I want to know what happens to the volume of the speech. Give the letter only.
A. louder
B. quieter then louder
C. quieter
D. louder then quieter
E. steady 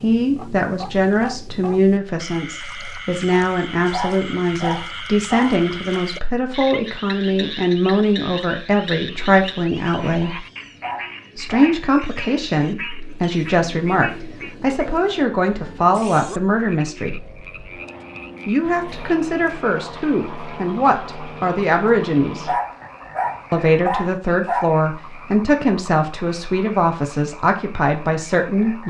E.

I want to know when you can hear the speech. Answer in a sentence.
The speech can be heard from 0.0 to 10.4 s, from 11.3 to 17.2 s, from 18.4 to 22.5 s and from 23.5 to 28.8 s.